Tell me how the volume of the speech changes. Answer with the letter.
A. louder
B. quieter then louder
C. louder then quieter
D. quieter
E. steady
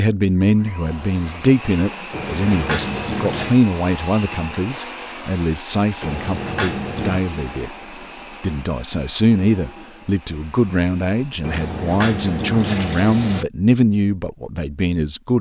E.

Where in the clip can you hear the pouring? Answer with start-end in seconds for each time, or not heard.
2.1-3.5, 6.0-7.2, 11.4-13.4.